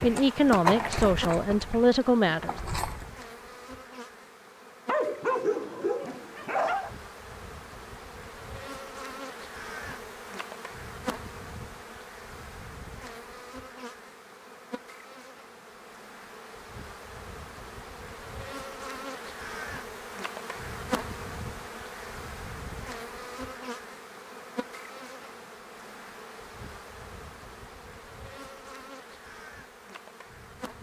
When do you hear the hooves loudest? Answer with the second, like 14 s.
1 s.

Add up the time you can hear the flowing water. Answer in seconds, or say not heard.
not heard.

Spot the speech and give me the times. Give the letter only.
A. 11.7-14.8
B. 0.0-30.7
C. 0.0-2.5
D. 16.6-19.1
C.